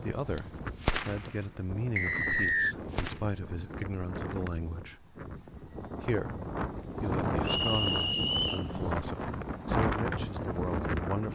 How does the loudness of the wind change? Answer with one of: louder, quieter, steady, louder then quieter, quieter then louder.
louder.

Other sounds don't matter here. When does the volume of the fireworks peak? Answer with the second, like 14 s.
1 s.